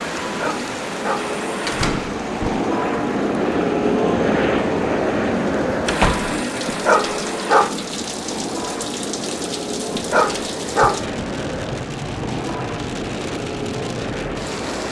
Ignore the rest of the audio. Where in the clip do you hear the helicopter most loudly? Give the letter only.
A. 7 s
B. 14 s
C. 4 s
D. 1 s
C.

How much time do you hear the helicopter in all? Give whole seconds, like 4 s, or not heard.
15 s.